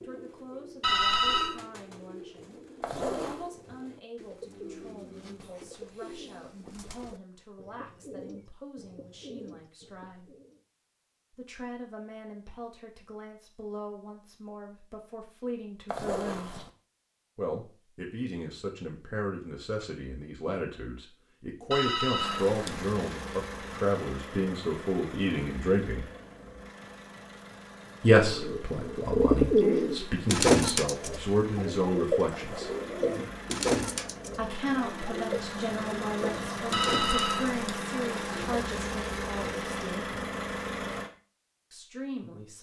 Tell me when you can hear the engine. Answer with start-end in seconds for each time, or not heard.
22.1-41.1.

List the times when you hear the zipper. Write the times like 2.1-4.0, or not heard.
2.8-3.5, 15.8-16.7, 32.3-32.9.